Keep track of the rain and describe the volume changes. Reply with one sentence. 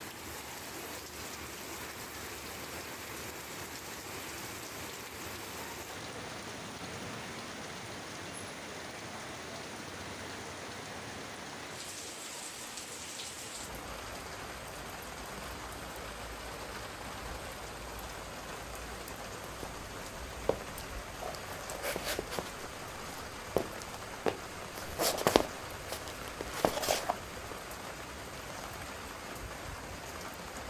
The loudness of the rain stays about the same.